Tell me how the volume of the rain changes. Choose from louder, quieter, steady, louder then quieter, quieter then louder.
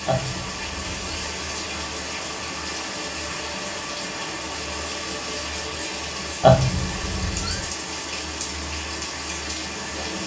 steady.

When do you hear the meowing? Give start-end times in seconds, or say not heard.
0.1-1.2, 6.4-7.6.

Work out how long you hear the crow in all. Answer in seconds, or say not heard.
not heard.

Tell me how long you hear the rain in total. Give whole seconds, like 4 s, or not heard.
10 s.